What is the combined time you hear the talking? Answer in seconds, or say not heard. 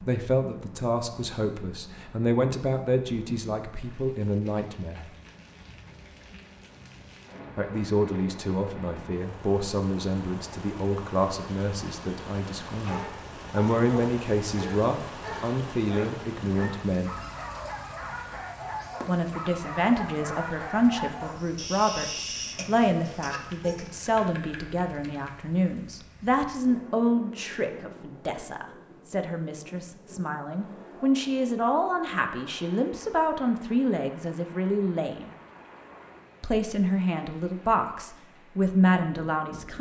34 s.